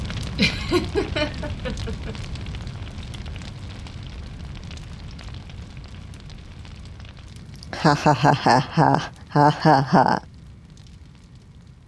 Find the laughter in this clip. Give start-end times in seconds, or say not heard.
0.3-2.1, 7.6-10.2.